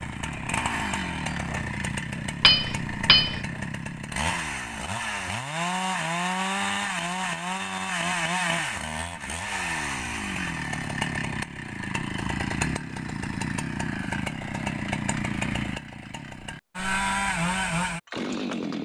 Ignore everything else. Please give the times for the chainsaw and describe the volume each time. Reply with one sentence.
You can hear the chainsaw from 0.0 to 18.8 s, at a steady volume.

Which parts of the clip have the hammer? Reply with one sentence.
The hammer can be heard from 2.4 to 3.4 s.